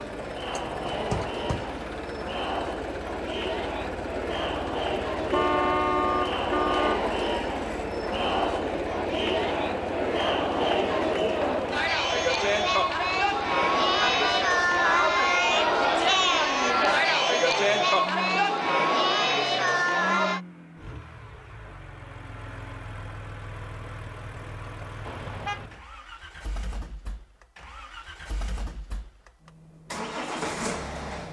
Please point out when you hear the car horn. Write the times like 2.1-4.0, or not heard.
5.3-7.0, 14.1-15.1, 25.1-25.7.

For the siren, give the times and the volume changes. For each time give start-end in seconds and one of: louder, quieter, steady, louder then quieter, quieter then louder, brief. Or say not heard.
not heard.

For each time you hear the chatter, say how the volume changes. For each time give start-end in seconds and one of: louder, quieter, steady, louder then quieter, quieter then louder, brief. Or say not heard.
0.0-20.4 louder.